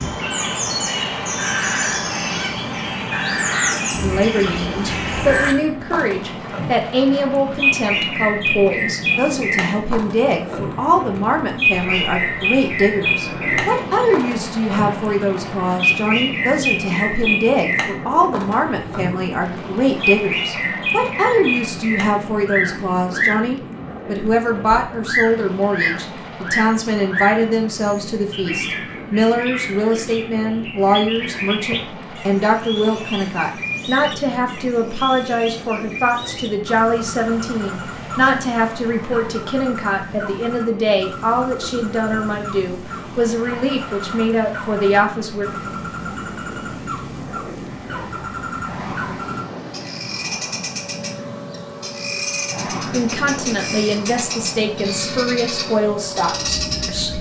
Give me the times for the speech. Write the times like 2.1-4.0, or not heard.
4.0-45.5, 52.9-57.1.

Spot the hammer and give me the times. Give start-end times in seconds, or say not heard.
not heard.